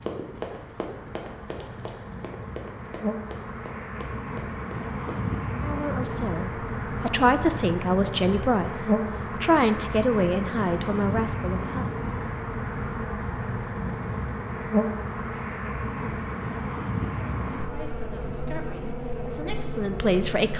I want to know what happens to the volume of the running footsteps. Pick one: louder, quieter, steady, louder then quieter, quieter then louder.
quieter.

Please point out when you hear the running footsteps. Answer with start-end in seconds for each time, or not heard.
0.0-5.2.